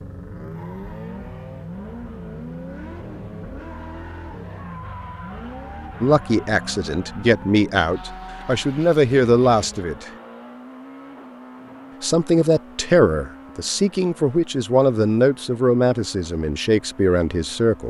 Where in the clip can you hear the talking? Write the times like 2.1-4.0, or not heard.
6.0-10.1, 12.0-17.8.